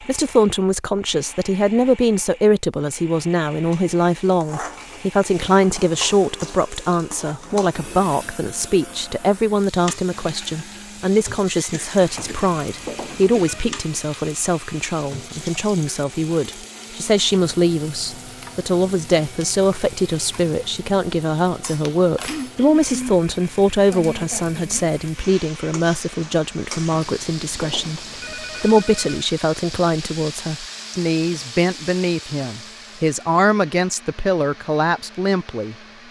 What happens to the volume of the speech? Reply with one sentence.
The loudness of the speech stays about the same.